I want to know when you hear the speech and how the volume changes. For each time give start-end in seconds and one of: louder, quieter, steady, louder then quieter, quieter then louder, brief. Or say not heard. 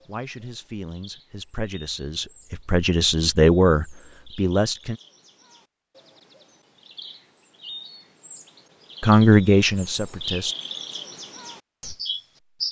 0.1-5.0 louder then quieter
9.0-10.6 brief.